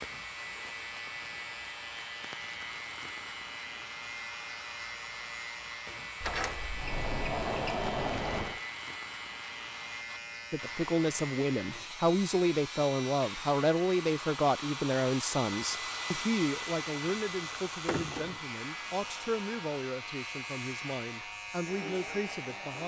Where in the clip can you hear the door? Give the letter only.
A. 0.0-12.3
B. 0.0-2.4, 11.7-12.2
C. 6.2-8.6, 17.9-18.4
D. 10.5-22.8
C.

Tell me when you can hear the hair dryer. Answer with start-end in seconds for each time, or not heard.
0.0-22.8.